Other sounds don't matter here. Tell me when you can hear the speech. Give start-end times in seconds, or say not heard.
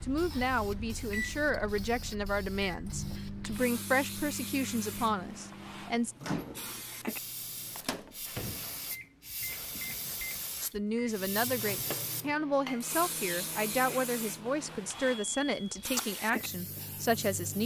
0.0-6.2, 10.6-17.6.